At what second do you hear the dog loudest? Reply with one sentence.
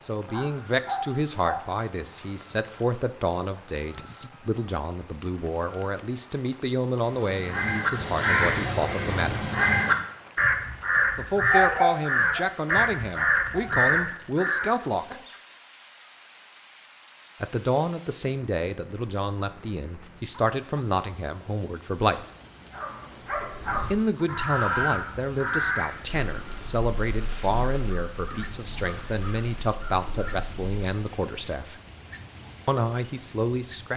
The loudest moment of the dog is at 12 seconds.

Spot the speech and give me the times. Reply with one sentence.
The speech can be heard from 0.1 to 9.5 s, from 11.2 to 15.2 s, from 17.4 to 22.2 s, from 23.9 to 31.8 s and from 32.6 to 33.9 s.